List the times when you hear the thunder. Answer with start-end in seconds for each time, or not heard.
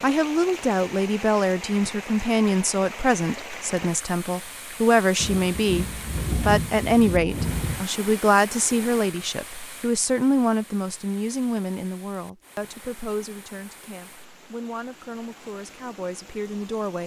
5.2-7.8.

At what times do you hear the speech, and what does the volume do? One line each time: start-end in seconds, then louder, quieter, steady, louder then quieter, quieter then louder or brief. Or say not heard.
0.0-17.0 quieter.